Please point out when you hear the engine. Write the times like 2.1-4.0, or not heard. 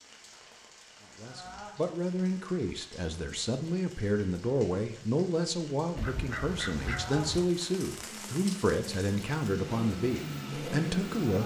8.0-11.4.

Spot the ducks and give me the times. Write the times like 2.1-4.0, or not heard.
6.0-7.5.